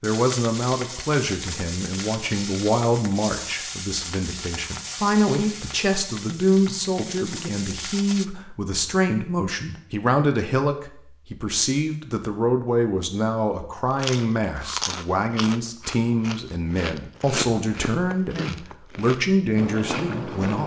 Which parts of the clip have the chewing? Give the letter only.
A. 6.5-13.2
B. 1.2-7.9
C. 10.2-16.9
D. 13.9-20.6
D.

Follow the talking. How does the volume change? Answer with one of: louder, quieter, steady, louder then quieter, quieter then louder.
steady.